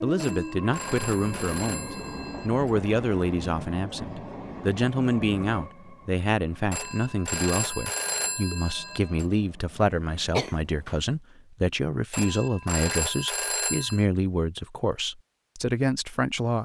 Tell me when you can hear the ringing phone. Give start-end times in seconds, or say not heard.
0.1-2.7, 6.7-9.2, 12.1-14.1.